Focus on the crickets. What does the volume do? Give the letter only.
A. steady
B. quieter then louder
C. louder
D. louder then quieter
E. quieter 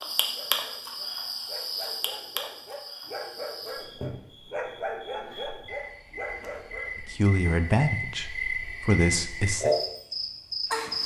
B.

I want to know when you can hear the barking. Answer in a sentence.
The barking can be heard from 0.3 to 7.0 s.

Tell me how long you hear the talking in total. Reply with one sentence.
You can hear the talking for 3 seconds altogether.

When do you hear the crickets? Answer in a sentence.
You can hear the crickets from 0.0 to 11.0 s.